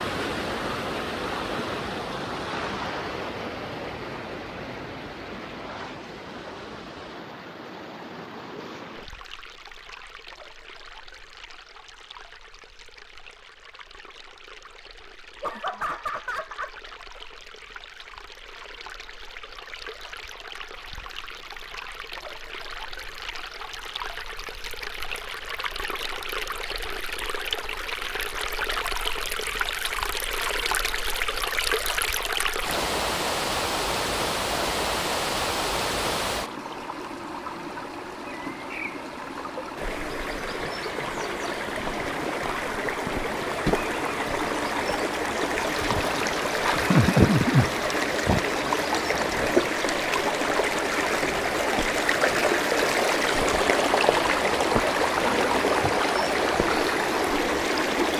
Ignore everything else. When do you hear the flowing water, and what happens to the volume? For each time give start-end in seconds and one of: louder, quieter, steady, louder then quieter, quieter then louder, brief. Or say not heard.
0.0-58.1 quieter then louder.